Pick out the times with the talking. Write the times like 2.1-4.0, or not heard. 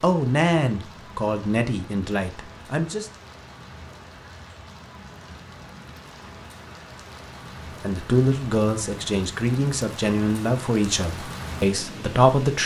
0.0-3.1, 7.8-12.6.